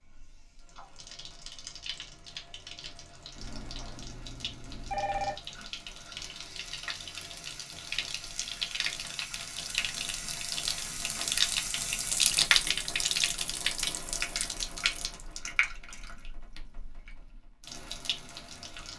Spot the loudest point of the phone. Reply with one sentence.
The loudest moment of the phone is at 5 seconds.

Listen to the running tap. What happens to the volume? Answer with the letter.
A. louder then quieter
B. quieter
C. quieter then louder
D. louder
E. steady
A.